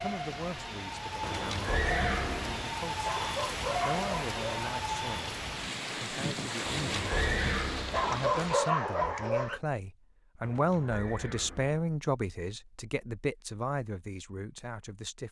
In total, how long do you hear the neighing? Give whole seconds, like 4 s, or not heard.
5 s.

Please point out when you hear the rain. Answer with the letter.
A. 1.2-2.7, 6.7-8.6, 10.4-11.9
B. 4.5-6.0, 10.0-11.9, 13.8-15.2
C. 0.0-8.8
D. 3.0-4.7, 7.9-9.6
C.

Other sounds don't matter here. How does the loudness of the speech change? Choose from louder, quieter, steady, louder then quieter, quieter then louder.
louder then quieter.